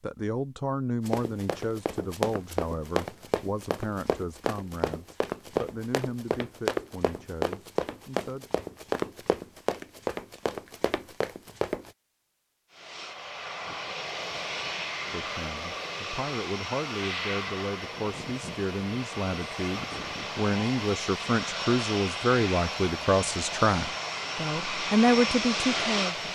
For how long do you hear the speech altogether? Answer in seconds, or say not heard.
20 s.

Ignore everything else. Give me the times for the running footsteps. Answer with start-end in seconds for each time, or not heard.
1.1-11.9.